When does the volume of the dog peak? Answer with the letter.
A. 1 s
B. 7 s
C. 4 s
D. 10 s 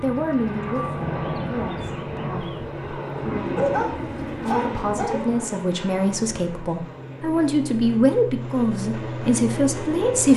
C.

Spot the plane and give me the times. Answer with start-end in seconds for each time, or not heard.
0.0-10.3.